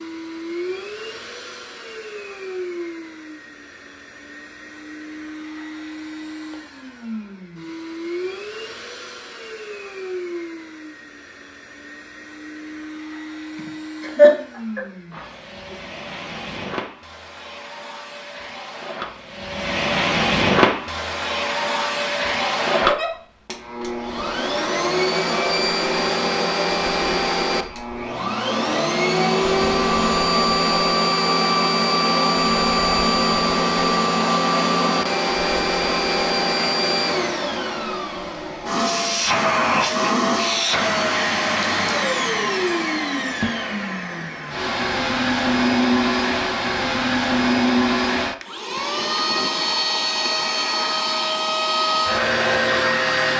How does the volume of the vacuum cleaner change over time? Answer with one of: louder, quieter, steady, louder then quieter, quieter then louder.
louder.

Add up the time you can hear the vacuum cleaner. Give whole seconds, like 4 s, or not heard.
53 s.